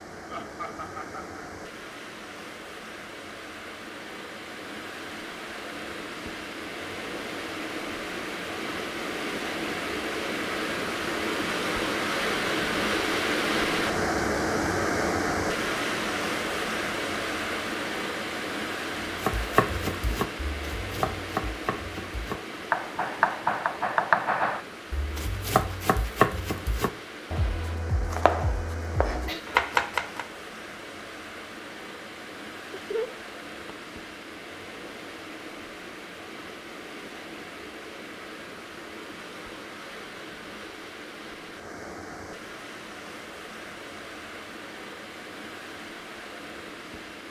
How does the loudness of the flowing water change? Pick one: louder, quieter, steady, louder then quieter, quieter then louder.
louder then quieter.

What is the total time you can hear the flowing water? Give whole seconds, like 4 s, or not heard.
47 s.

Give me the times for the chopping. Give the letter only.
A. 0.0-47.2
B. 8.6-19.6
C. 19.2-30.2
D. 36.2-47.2
C.